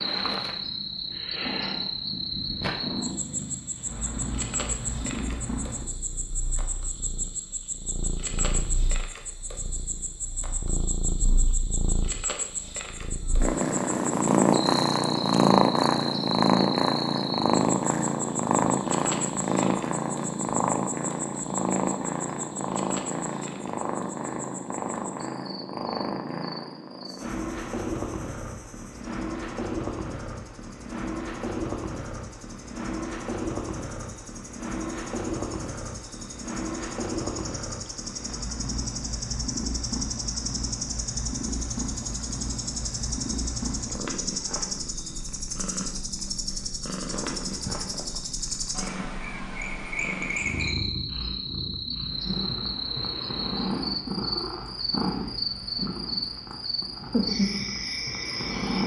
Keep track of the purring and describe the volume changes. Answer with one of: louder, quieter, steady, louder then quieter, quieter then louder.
louder then quieter.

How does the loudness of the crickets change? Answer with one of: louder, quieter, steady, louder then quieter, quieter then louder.
quieter then louder.